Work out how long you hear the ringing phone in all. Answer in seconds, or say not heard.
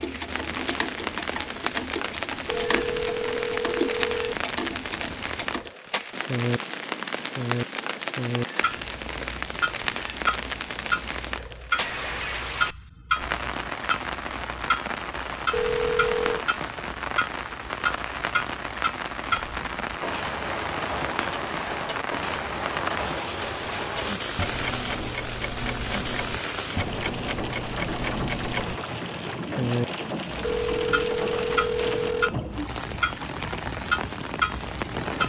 5 s.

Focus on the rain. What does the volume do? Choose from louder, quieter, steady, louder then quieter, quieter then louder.
steady.